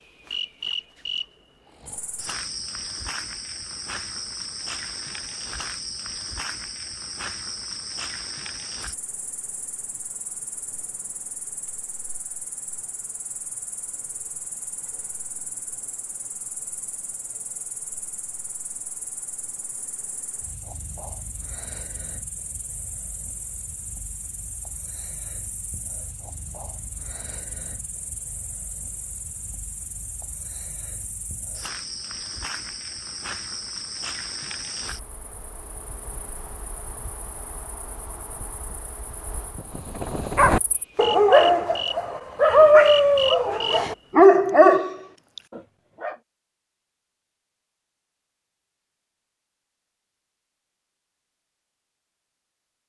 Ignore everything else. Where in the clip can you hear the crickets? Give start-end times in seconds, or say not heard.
0.0-44.0.